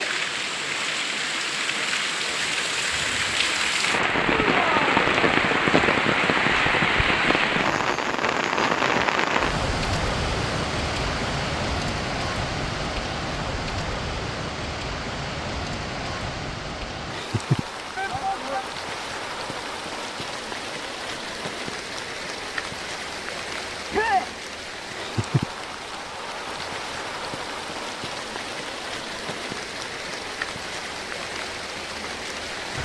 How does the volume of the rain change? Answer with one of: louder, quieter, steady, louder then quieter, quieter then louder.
quieter.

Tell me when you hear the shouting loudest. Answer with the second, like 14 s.
24 s.